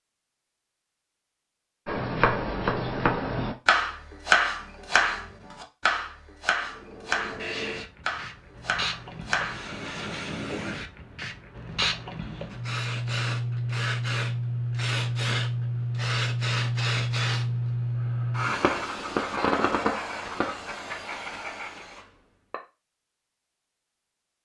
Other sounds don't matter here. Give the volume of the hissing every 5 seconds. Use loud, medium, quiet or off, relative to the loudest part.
off, medium, loud, loud, medium.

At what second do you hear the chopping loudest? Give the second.
4 s.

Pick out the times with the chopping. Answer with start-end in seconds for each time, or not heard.
1.9-9.8.